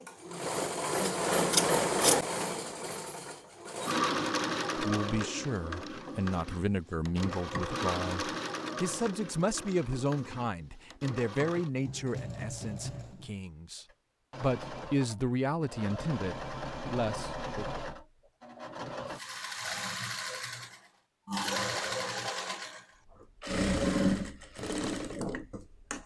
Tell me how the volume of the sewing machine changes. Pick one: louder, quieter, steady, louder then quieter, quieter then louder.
quieter then louder.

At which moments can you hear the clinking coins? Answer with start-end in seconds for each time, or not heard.
not heard.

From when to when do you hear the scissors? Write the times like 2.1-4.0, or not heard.
1.0-2.2.